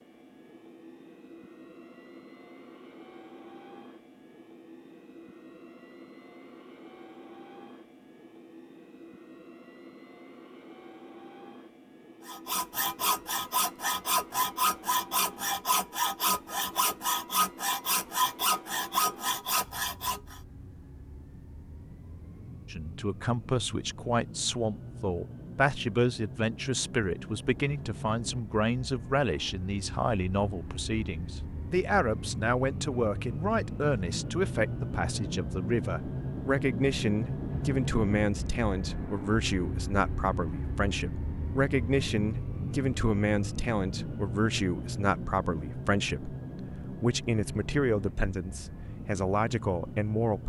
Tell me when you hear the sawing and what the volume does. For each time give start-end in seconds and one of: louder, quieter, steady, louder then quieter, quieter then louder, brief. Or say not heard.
12.2-20.4 steady.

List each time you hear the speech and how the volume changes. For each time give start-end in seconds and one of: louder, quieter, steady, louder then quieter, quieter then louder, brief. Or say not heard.
22.7-50.4 steady.